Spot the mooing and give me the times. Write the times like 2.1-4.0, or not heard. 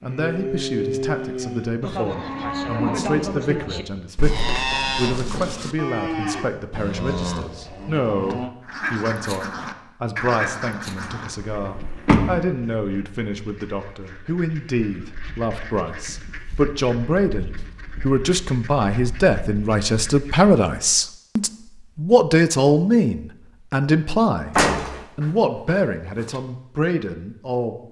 0.0-8.5.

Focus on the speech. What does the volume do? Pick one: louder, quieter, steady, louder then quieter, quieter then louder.
louder.